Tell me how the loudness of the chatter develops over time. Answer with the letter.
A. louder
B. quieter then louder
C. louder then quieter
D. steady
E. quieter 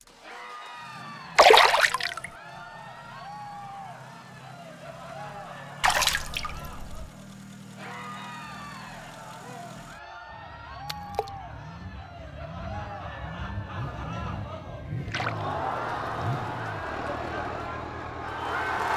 A.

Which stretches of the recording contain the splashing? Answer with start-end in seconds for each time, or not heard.
1.4-2.2, 5.8-7.1, 10.8-11.3, 15.1-15.5.